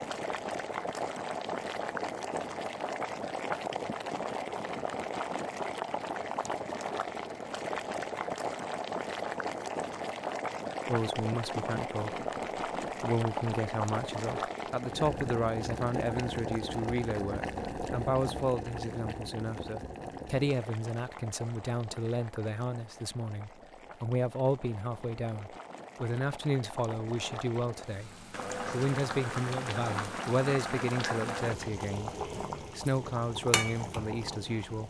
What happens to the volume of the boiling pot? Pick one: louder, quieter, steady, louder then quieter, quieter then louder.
quieter then louder.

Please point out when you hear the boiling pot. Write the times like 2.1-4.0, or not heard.
0.0-34.8.